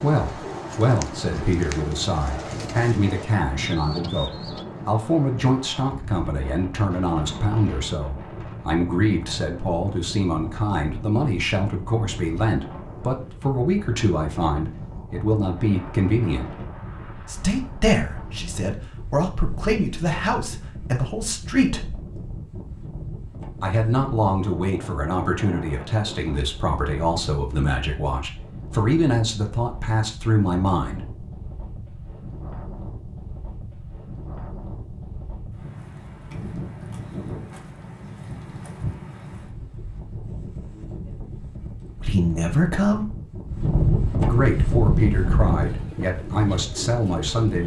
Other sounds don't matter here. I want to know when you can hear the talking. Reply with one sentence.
The talking can be heard from 0.0 to 16.6 s, from 17.2 to 21.9 s, from 23.6 to 31.0 s, from 42.0 to 43.1 s and from 44.2 to 47.6 s.